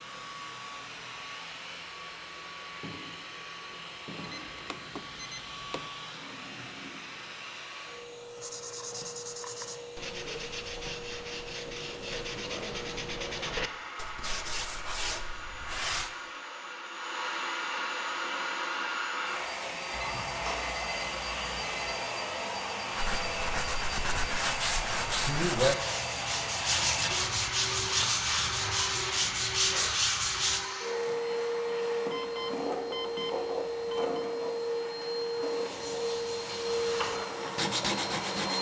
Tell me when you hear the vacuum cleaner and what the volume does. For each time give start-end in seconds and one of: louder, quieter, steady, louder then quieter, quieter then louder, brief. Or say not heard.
0.0-38.5 louder.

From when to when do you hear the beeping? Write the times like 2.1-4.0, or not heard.
4.2-5.8, 19.9-21.9, 32.1-34.2.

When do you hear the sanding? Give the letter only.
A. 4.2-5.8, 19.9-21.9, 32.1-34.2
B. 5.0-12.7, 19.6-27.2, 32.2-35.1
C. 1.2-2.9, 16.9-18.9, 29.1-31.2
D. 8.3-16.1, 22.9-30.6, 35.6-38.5
D.